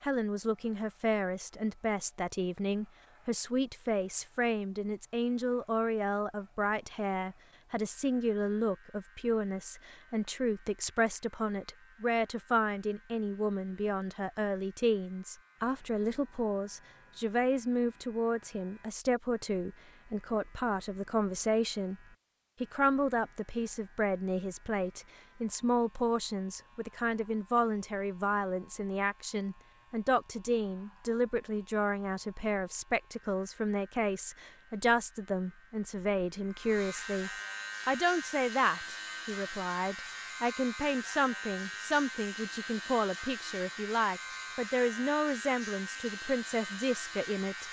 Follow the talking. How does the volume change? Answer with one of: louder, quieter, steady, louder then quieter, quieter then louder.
steady.